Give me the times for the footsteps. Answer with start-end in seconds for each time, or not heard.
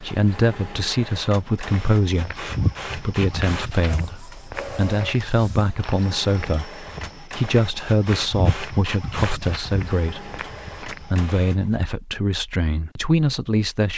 1.6-11.2.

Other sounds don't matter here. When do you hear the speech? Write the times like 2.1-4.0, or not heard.
0.0-13.9.